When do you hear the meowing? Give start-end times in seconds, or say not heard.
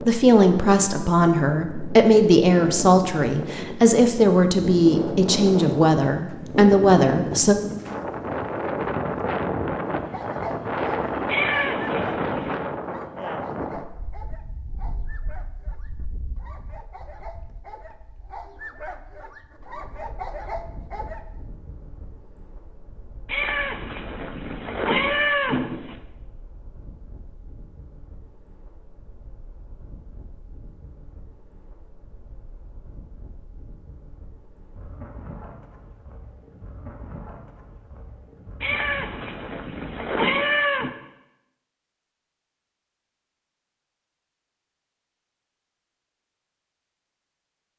11.2-12.7, 23.2-26.0, 38.6-41.0.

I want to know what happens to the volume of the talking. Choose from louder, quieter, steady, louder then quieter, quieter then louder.
steady.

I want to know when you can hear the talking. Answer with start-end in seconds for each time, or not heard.
0.0-7.5.